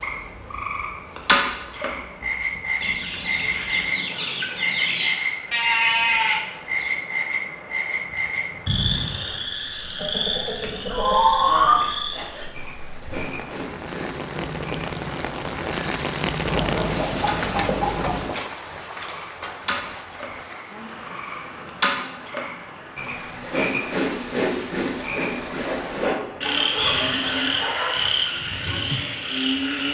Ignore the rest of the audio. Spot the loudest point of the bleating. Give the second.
6 s.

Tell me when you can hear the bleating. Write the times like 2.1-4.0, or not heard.
5.5-6.9, 26.6-27.4.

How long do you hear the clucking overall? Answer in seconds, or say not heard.
8 s.